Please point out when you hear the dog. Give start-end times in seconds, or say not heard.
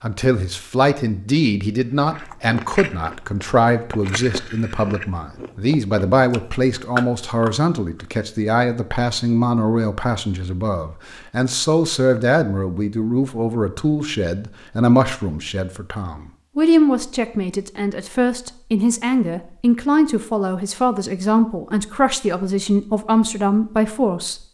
not heard.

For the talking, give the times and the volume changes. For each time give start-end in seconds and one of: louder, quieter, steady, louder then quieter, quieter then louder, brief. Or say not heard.
0.0-24.4 steady.